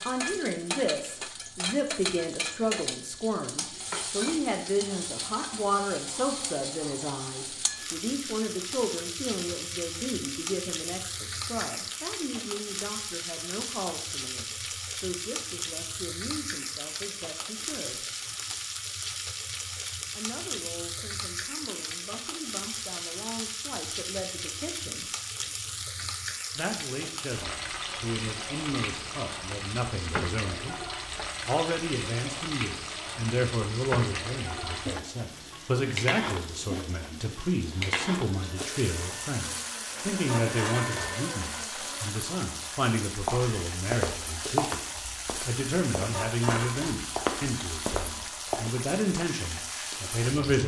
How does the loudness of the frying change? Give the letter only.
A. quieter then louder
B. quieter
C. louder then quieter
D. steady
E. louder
D.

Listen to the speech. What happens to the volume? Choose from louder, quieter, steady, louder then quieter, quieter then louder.
quieter then louder.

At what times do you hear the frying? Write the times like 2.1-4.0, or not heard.
0.0-50.6.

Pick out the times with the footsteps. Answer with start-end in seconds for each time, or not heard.
43.2-48.7.